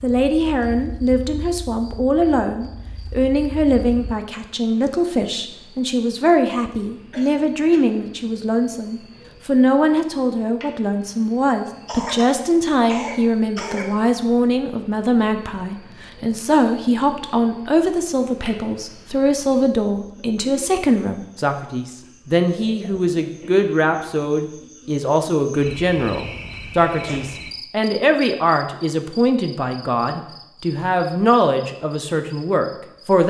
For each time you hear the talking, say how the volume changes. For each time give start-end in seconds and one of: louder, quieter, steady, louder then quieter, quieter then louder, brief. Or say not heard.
0.0-33.2 steady.